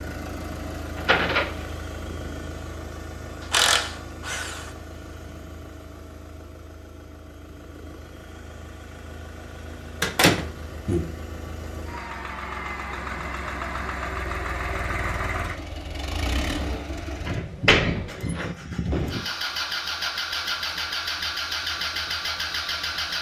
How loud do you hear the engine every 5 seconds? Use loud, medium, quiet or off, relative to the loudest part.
medium, quiet, medium, loud, loud.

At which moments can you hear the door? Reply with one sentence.
You can hear the door from 0.9 to 1.6 s, from 10.0 to 11.1 s and from 17.2 to 18.6 s.